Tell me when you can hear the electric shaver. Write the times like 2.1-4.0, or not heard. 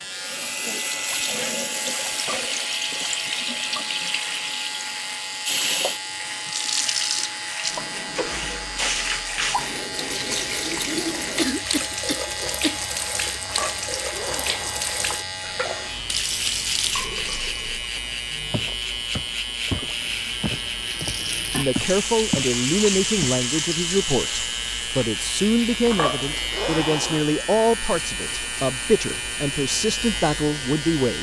0.0-31.1.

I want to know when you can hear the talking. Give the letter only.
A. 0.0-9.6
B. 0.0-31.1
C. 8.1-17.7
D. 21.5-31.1
D.